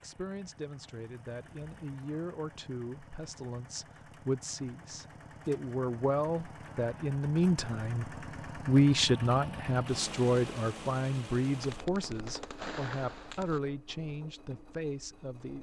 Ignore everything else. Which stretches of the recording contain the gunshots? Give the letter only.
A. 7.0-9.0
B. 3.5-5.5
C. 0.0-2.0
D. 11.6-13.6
D.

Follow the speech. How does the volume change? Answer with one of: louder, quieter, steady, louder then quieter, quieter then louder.
louder then quieter.